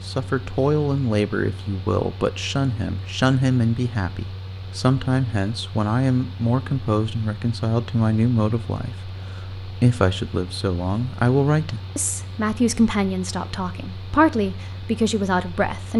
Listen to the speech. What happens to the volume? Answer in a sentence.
The loudness of the speech stays about the same.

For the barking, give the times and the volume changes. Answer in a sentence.
You can't hear the barking here.